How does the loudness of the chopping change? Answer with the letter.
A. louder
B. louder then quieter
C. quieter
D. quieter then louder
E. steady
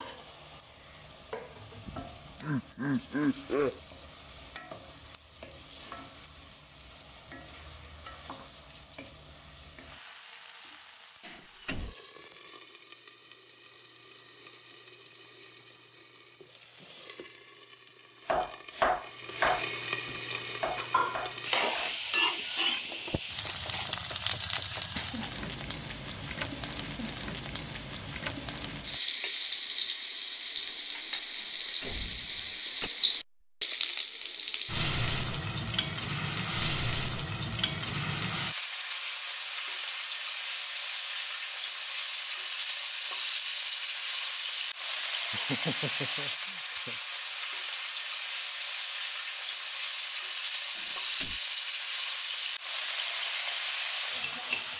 C.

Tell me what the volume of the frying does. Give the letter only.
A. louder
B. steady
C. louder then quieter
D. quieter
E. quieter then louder
A.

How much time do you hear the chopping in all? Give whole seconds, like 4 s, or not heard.
7 s.